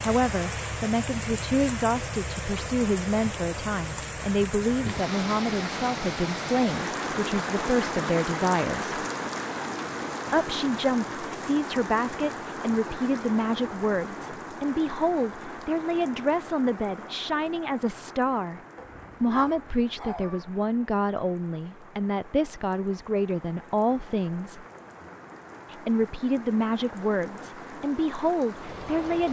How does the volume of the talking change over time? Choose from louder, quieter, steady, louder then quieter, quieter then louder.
steady.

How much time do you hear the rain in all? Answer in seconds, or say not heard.
29 s.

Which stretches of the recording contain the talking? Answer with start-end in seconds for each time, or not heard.
0.0-9.0, 10.3-18.6, 19.2-24.6, 25.7-29.2.